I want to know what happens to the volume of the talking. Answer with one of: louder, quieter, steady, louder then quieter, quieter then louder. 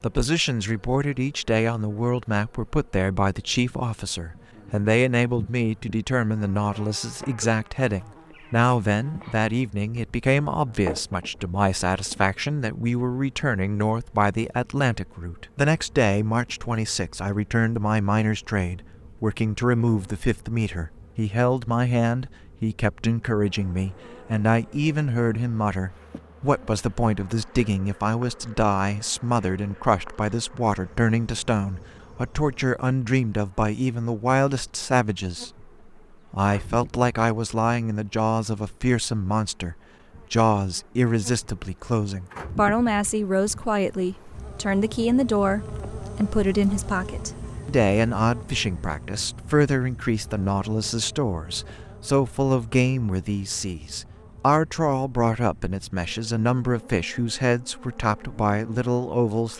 steady.